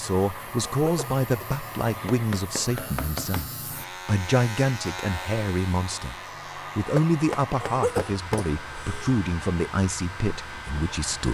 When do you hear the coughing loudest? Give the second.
8 s.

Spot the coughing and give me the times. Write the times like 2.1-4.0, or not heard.
0.7-1.5, 7.6-9.1.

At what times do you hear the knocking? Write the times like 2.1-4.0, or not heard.
1.9-3.5, 7.0-8.5.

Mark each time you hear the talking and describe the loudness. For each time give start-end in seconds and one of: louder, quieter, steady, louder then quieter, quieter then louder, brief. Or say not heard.
0.0-11.2 steady.